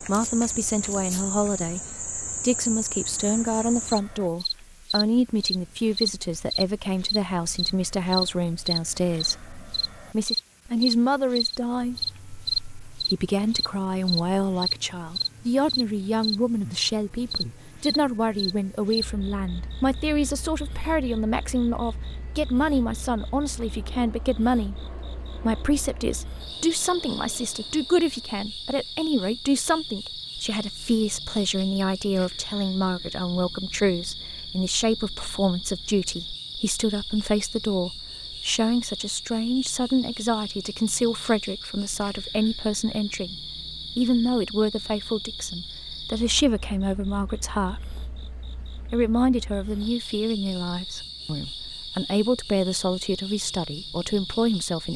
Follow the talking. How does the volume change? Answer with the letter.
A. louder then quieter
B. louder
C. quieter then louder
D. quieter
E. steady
E.